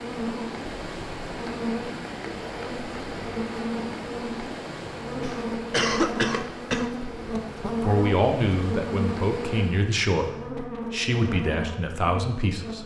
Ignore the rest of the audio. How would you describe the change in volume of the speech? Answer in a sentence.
The volume of the speech stays about the same.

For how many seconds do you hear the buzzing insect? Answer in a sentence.
The buzzing insect can be heard for 13 seconds in total.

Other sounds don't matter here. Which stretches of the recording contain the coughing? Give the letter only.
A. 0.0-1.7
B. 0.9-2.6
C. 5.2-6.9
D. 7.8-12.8
C.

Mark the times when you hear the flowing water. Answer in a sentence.
You can hear the flowing water from 0.0 to 10.0 s.